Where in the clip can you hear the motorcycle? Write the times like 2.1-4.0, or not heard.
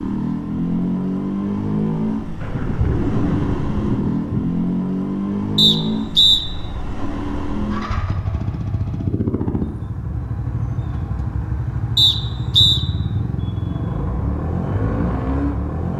0.0-15.9.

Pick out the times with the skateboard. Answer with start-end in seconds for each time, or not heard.
not heard.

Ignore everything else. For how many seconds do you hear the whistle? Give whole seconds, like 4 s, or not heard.
2 s.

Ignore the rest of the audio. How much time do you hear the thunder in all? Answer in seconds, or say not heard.
2 s.